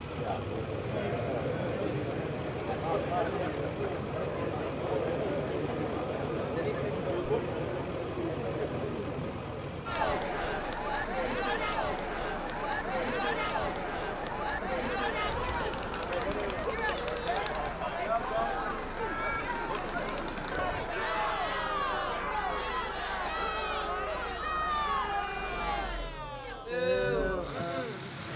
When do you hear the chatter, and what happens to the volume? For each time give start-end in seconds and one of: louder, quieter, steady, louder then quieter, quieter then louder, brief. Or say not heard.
0.0-28.3 steady.